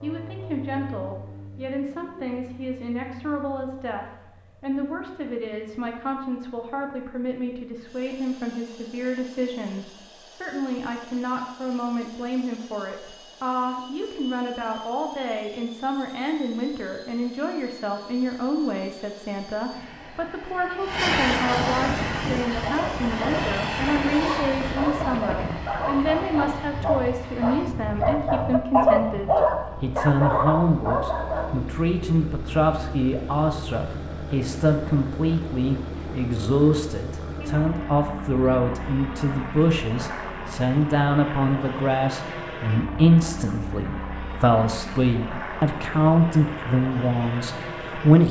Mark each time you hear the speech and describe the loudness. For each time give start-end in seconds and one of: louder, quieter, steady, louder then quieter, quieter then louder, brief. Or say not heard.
0.0-48.2 louder.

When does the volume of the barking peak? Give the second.
29 s.